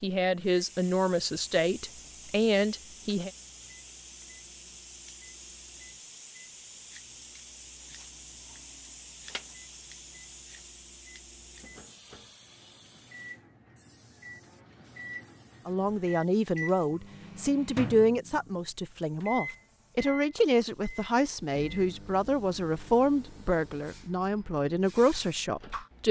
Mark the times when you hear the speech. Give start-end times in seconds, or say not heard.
0.0-3.3, 15.7-26.0.